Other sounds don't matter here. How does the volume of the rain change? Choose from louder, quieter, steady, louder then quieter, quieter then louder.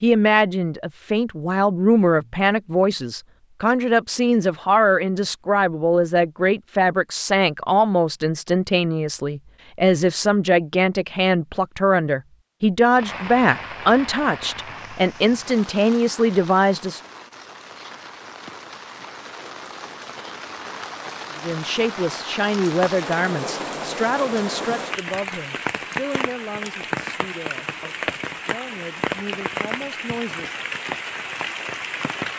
louder.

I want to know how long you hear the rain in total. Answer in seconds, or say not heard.
19 s.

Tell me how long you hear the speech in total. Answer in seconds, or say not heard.
26 s.